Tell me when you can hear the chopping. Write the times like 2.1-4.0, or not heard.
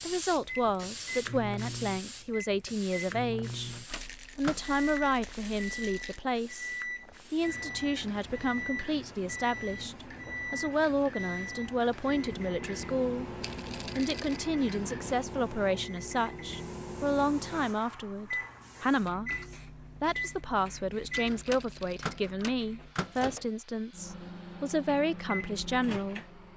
not heard.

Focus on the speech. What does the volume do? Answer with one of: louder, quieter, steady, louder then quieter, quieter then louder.
steady.